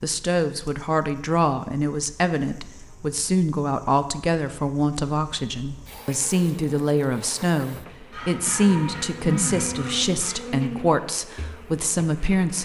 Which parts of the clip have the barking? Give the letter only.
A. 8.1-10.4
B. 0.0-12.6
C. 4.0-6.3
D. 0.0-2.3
A.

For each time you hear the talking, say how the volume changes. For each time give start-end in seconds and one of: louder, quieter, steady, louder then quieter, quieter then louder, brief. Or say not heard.
0.0-12.6 steady.